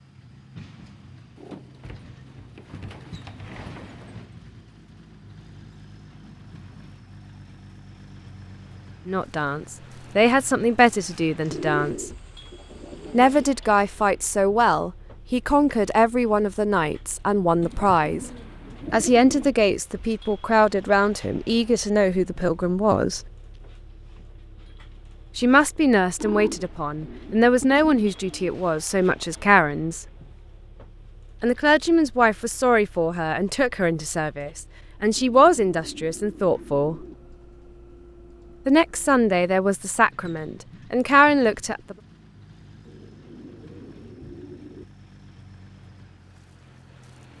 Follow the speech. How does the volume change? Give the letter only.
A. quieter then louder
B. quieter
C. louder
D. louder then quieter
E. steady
E.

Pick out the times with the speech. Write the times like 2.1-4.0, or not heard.
9.1-12.1, 13.1-18.3, 18.9-23.2, 25.4-30.1, 31.4-37.0, 38.6-42.0.